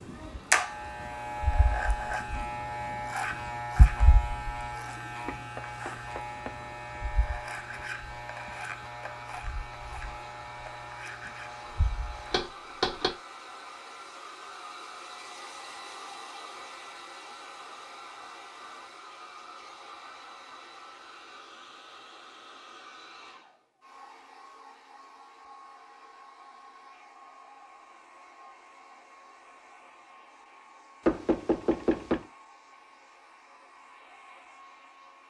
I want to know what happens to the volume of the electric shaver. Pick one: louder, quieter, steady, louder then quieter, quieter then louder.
quieter.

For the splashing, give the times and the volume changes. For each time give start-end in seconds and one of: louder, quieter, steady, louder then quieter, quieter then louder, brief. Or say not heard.
not heard.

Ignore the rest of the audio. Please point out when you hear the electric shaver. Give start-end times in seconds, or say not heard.
0.0-12.4.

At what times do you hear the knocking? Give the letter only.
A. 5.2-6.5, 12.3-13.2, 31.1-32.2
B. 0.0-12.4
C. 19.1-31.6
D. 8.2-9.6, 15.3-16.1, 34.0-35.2
A.